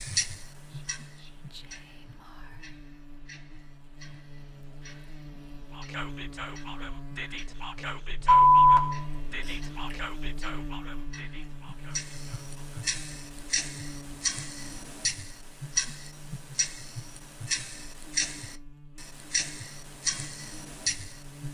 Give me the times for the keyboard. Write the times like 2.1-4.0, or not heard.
not heard.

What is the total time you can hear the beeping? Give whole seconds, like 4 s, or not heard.
2 s.